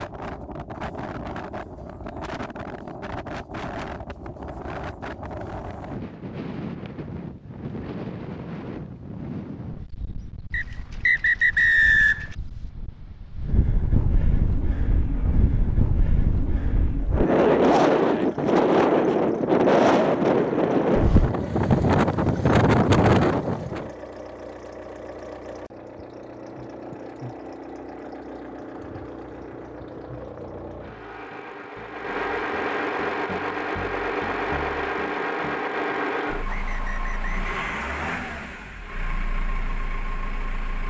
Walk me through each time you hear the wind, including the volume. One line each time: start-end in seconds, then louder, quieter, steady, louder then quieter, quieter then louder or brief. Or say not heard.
0.0-23.9 louder.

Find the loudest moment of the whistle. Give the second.
12 s.